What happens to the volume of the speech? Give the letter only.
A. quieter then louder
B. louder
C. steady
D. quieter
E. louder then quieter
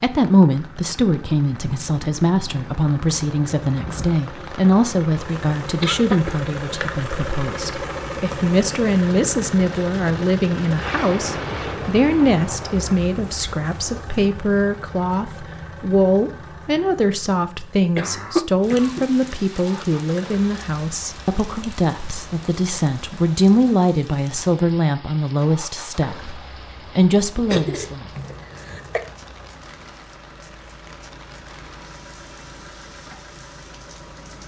C.